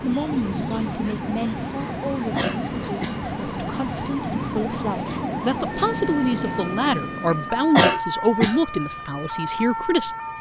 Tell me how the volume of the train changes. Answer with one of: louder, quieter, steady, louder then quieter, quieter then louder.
steady.